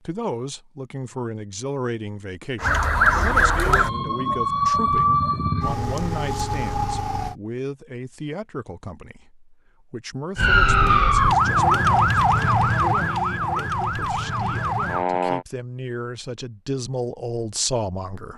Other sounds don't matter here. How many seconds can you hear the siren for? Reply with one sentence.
You can hear the siren for 10 seconds altogether.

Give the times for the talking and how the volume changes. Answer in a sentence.
The talking can be heard from 0.1 to 18.3 s, getting quieter then louder.